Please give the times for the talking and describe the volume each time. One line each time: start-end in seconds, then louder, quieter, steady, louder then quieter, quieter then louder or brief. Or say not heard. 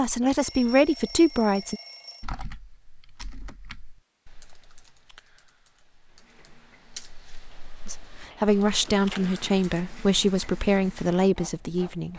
0.0-1.8 brief
7.8-12.1 steady.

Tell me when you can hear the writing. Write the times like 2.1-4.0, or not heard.
not heard.